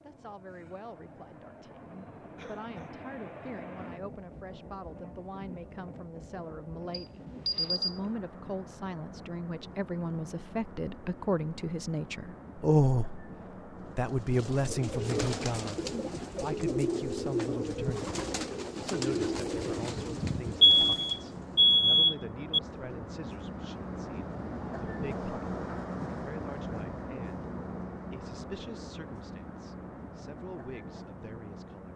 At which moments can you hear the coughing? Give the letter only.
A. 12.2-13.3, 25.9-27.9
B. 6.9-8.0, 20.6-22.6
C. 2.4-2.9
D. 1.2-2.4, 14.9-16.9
C.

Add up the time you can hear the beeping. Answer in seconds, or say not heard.
3 s.